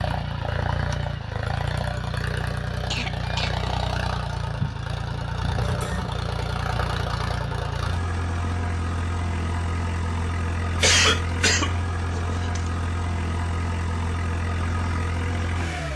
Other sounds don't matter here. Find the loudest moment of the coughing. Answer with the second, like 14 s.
11 s.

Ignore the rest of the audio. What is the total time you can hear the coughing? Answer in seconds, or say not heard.
3 s.